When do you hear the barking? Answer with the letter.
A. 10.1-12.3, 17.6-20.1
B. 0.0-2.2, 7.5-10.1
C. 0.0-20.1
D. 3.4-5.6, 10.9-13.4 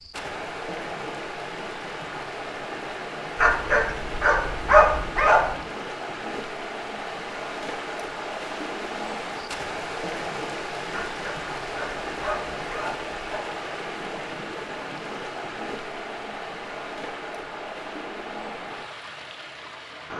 D.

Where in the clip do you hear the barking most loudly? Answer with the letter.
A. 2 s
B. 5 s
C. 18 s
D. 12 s
B.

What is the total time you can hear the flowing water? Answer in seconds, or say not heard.
20 s.